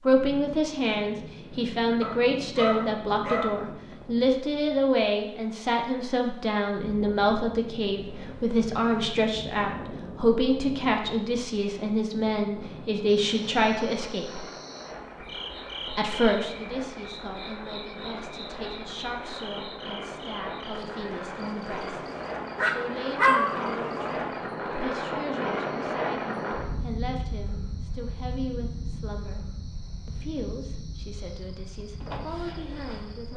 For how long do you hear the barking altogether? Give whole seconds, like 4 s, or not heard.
3 s.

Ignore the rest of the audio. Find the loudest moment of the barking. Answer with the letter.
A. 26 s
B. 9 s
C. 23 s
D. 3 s
C.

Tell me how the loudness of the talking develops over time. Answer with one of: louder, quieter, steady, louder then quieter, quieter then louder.
quieter.